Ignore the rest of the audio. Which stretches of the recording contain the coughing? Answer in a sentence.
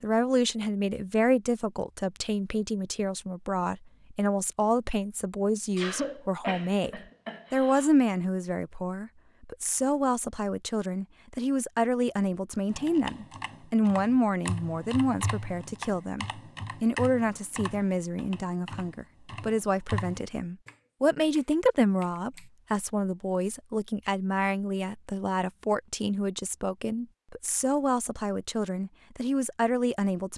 You can hear the coughing from 5.8 to 7.9 s.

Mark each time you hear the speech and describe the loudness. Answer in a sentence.
The speech can be heard from 0.0 to 30.3 s, at a steady volume.